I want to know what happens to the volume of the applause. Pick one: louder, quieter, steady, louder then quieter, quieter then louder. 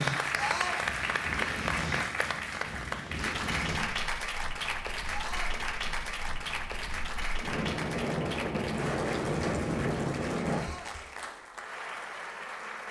quieter.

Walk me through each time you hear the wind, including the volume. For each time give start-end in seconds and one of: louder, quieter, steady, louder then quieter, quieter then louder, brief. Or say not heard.
0.0-10.7 quieter then louder.